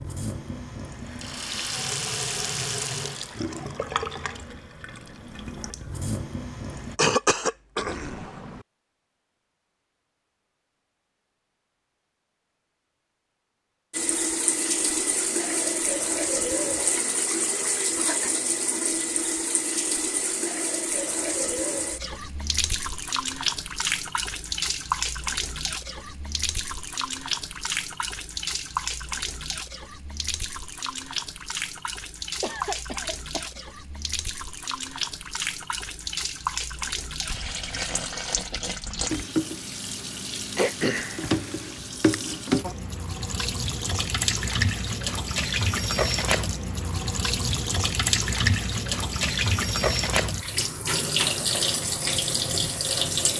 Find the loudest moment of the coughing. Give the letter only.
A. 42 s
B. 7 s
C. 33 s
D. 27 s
B.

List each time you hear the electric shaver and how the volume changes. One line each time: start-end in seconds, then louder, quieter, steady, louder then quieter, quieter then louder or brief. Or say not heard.
not heard.